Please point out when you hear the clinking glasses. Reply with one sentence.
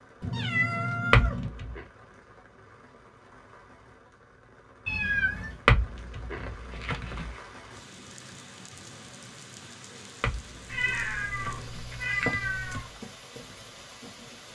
The clinking glasses can be heard from 1.1 to 1.8 s, from 5.7 to 7.3 s and from 10.2 to 12.8 s.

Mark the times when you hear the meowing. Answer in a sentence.
The meowing can be heard from 0.2 to 1.5 s, from 4.8 to 5.6 s and from 10.7 to 12.9 s.